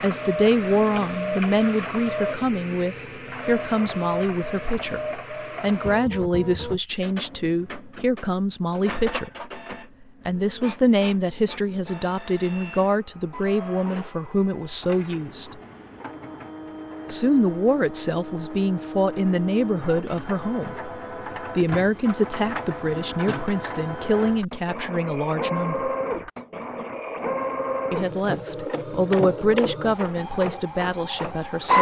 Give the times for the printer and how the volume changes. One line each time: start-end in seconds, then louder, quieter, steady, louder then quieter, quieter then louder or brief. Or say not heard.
0.0-31.7 quieter then louder.